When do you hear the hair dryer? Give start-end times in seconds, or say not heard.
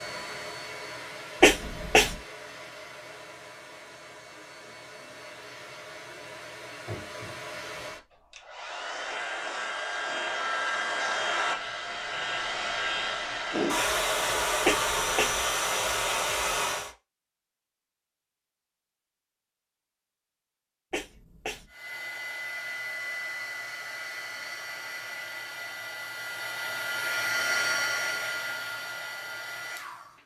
0.0-16.9, 21.6-30.2.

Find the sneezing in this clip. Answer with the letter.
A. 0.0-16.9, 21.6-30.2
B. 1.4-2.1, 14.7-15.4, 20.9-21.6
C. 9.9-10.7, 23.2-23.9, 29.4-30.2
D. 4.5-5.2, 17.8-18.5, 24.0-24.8
B.